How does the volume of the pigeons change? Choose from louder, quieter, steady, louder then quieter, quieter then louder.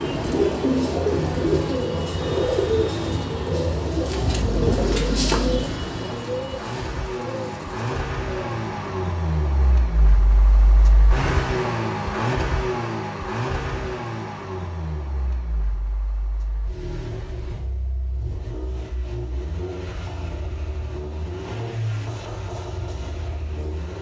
quieter.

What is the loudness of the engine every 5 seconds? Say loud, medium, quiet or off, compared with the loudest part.
medium, loud, loud, medium, medium.